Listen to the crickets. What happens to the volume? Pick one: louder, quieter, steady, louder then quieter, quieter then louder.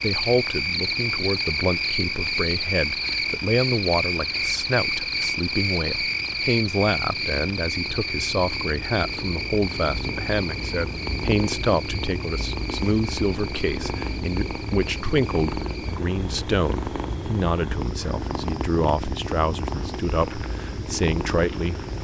quieter.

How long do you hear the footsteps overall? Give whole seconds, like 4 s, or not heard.
not heard.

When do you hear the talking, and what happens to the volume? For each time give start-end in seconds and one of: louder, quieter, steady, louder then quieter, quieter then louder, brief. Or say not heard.
0.0-21.8 steady.